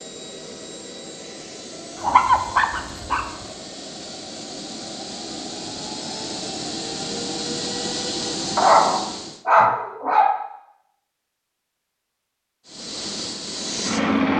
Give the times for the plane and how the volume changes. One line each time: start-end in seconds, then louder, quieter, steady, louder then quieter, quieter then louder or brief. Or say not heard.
0.0-9.4 louder
12.7-14.3 brief.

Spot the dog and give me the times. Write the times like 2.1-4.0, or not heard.
2.0-3.2, 8.6-10.4.